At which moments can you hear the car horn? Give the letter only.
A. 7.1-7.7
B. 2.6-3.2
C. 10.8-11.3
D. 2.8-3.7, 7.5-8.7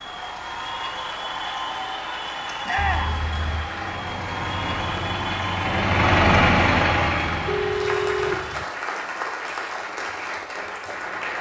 D.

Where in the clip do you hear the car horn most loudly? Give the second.
8 s.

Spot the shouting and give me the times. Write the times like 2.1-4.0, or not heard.
2.6-3.2.